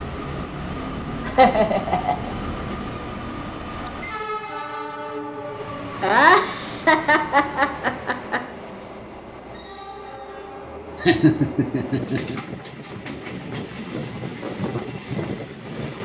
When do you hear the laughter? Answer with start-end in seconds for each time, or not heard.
1.2-2.4, 6.0-8.4, 11.0-12.3.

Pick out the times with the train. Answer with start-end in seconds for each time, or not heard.
0.0-16.0.